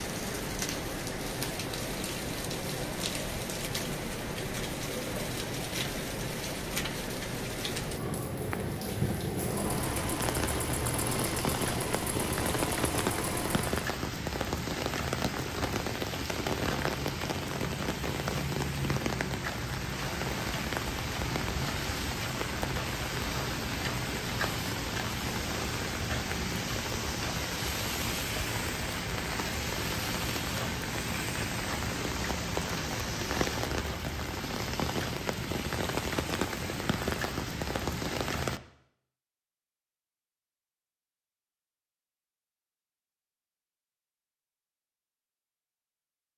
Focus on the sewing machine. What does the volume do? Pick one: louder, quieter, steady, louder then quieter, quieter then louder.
steady.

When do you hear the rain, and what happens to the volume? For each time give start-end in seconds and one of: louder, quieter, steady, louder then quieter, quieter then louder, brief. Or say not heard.
0.0-38.6 steady.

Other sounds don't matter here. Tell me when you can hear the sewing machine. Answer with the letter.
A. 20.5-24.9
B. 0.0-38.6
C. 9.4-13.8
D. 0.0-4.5
C.